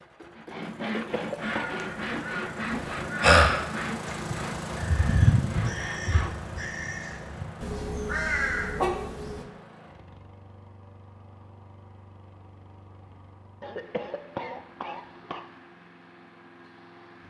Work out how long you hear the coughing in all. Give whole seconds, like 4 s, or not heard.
3 s.